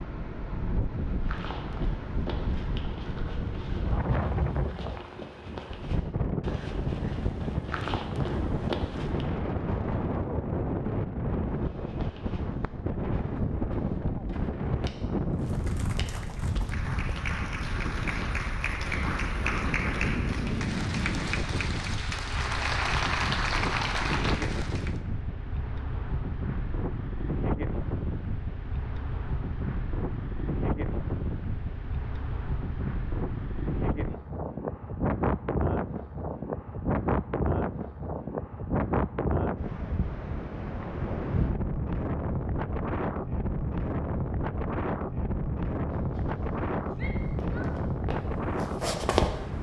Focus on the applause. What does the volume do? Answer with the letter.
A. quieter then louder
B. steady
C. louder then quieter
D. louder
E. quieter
D.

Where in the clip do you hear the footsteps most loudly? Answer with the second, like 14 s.
49 s.